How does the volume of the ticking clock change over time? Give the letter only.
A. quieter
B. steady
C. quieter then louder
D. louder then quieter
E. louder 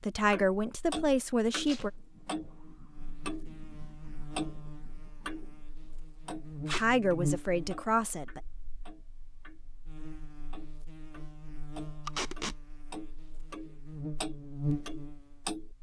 C.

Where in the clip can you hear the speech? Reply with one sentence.
The speech can be heard from 0.0 to 1.9 s and from 6.8 to 8.4 s.